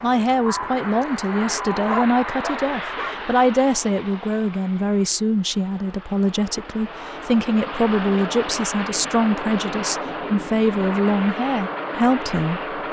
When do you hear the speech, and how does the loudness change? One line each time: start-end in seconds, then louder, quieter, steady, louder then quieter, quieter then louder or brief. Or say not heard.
0.0-12.8 steady.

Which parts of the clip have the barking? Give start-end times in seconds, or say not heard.
1.9-3.2.